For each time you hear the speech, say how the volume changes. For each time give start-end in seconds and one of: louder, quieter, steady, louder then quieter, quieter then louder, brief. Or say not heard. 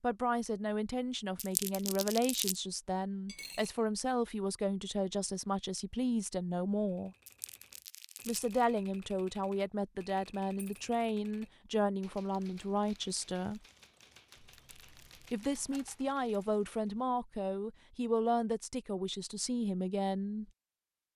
0.0-7.2 steady
8.2-13.6 steady
15.3-20.4 steady.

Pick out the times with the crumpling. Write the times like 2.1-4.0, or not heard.
1.4-2.6, 7.2-8.7, 14.6-15.4.